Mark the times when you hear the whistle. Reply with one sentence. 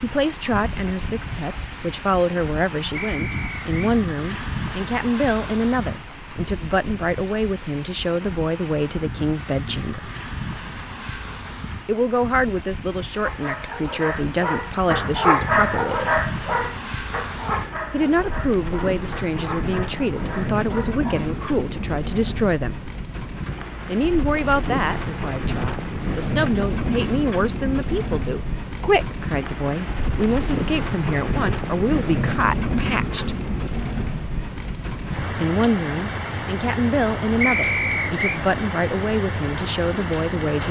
The whistle can be heard from 2.9 to 3.7 s and from 37.4 to 38.4 s.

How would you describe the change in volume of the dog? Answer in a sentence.
The loudness of the dog goes up, then down.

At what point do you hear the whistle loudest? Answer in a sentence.
The loudest moment of the whistle is at 38 seconds.